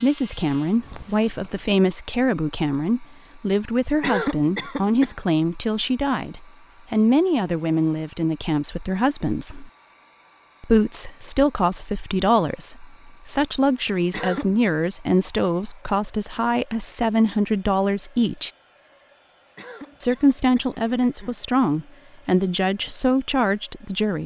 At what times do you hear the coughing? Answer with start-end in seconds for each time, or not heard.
4.0-5.2, 14.1-14.6, 19.6-21.4.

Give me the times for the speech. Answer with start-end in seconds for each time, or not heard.
0.0-9.7, 10.6-18.5, 20.0-24.2.